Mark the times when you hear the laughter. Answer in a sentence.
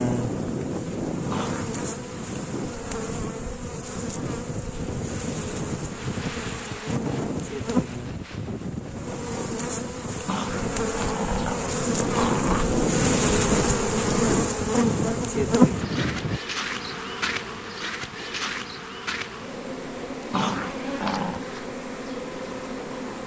You can't hear the laughter here.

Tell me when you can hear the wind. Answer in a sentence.
You can hear the wind from 0.0 to 16.4 s.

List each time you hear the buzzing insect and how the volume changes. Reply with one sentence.
You can hear the buzzing insect from 0.0 to 23.2 s, getting louder then quieter.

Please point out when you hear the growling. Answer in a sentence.
You can hear the growling from 1.3 to 1.8 s, from 10.2 to 12.7 s and from 20.3 to 21.4 s.